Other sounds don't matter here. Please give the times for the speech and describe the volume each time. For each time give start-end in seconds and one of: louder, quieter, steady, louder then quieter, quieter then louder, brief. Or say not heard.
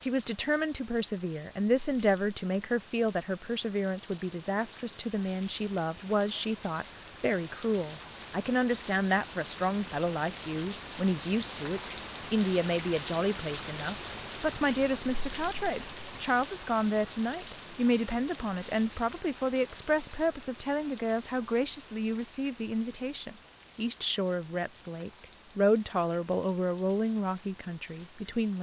0.0-28.5 steady.